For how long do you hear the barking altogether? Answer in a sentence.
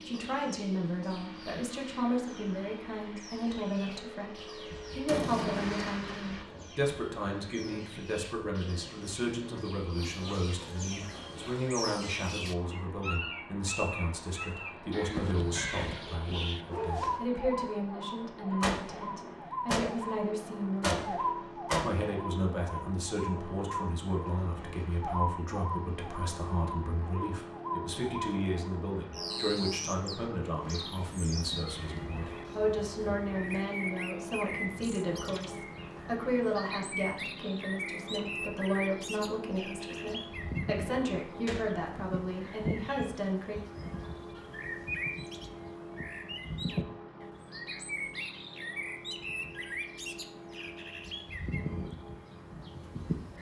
The barking can be heard for 2 seconds in total.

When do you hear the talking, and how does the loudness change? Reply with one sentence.
The talking can be heard from 0.1 to 43.6 s, at a steady volume.